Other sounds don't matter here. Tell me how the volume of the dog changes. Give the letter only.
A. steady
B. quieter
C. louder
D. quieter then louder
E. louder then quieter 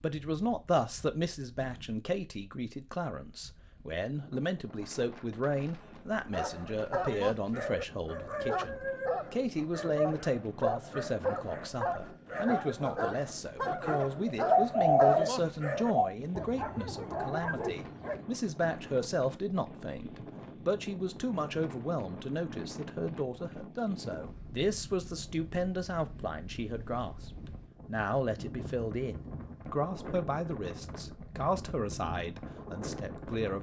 A.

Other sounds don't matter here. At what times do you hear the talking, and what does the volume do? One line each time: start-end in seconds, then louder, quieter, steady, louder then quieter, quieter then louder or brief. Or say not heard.
0.0-33.5 steady.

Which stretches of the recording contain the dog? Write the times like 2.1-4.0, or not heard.
6.3-18.2.